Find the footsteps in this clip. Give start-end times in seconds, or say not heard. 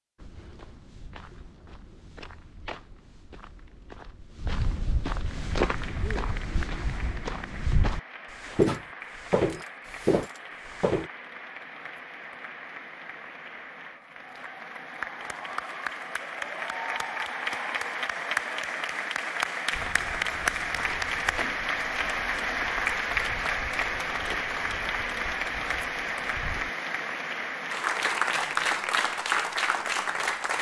0.1-11.1, 19.7-26.7.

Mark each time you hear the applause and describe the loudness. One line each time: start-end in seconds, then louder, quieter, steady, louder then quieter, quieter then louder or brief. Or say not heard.
5.3-30.5 louder.